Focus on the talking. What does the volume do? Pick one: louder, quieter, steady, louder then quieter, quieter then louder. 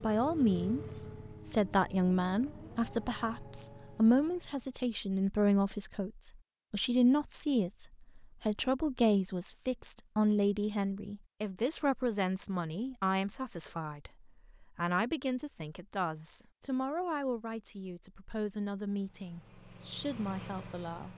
quieter.